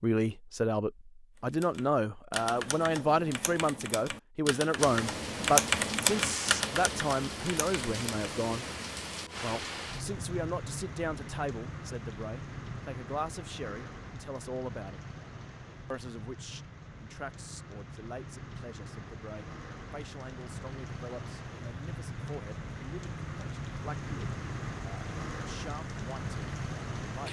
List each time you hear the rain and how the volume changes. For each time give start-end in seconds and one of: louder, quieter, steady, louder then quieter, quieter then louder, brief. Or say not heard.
4.8-27.2 quieter then louder.